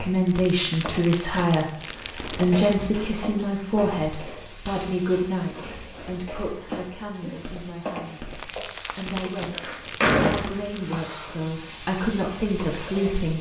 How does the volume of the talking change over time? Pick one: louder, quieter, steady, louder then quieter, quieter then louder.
quieter then louder.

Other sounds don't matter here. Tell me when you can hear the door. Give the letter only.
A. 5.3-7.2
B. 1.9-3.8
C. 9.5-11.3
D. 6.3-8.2
C.